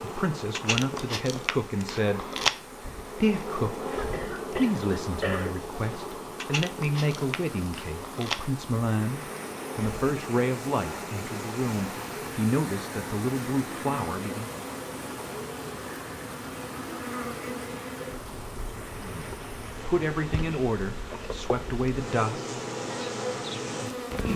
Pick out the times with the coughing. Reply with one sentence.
The coughing can be heard from 3.9 to 5.5 s.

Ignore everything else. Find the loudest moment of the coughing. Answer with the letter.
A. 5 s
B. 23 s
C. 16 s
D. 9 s
A.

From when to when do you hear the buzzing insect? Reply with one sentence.
You can hear the buzzing insect from 0.0 to 24.3 s.